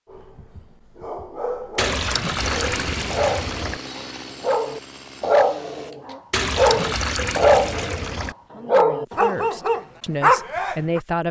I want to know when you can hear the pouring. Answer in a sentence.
You can hear the pouring from 1.8 to 3.8 s and from 6.3 to 8.3 s.